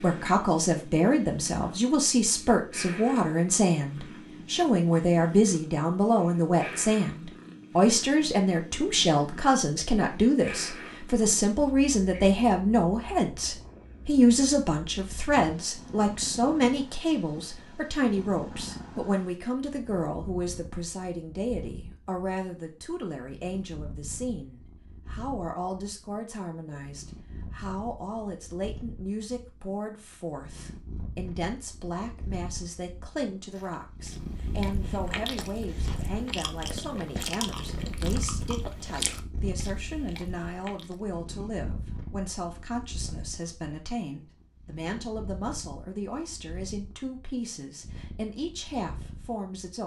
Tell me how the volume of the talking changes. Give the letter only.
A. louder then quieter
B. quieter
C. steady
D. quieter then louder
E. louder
B.